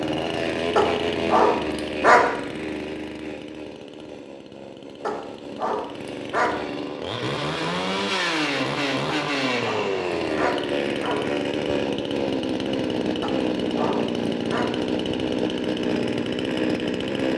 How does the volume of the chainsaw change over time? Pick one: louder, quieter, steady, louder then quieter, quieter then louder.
quieter then louder.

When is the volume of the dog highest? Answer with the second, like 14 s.
2 s.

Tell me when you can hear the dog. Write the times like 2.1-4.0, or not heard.
0.8-2.3, 5.0-6.6, 9.1-11.2, 13.2-14.7.